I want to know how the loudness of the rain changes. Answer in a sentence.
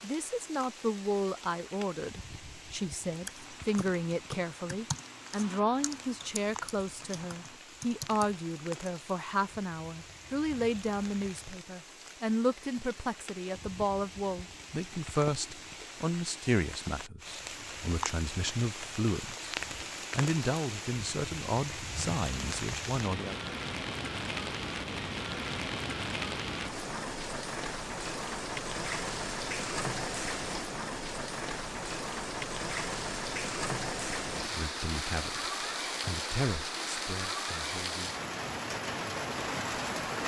The volume of the rain goes up.